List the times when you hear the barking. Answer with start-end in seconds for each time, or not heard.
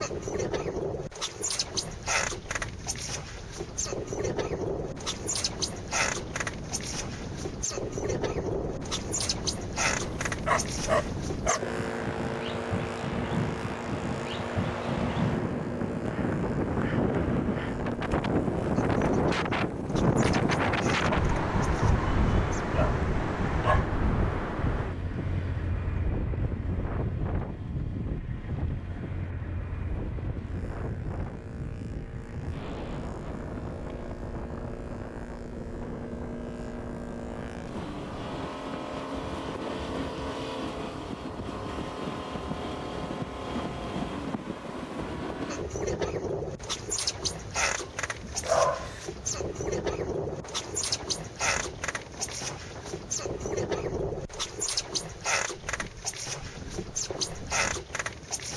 10.2-11.6, 21.1-23.9, 47.8-49.0.